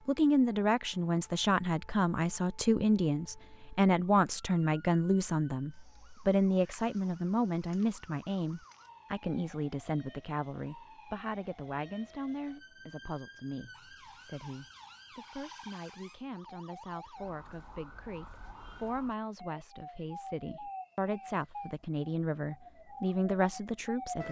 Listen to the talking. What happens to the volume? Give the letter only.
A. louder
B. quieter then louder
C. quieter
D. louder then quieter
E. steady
B.